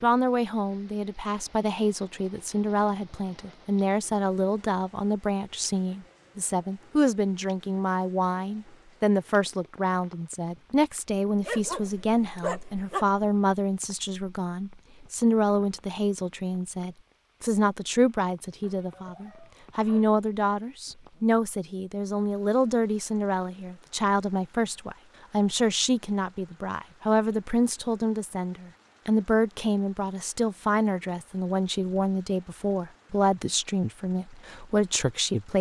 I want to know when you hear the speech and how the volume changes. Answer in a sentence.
The speech can be heard from 0.0 to 35.5 s, at a steady volume.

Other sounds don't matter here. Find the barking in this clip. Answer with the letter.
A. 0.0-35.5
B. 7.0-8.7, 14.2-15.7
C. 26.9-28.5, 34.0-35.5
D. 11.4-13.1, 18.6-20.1
D.